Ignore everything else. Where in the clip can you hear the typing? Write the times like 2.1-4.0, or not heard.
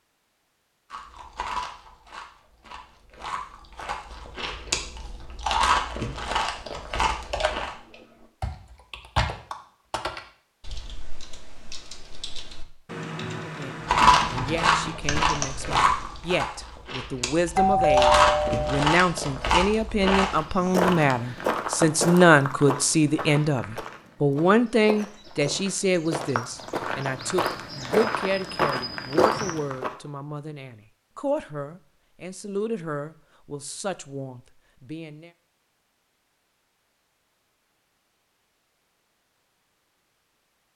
7.3-16.3.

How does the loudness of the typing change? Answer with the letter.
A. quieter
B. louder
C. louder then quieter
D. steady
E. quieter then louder
E.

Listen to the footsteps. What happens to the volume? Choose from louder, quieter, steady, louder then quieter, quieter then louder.
quieter then louder.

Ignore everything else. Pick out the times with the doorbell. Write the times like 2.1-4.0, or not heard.
17.6-18.9.